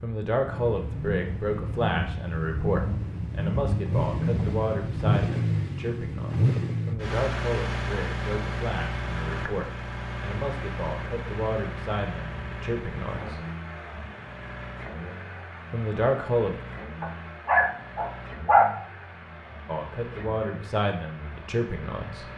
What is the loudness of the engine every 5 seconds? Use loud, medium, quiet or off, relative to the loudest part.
loud, loud, medium, quiet, quiet.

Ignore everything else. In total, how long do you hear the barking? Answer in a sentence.
You can hear the barking for 2 seconds altogether.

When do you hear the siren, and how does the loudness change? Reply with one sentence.
You can't hear the siren here.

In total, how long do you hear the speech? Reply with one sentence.
The speech can be heard for 17 seconds in total.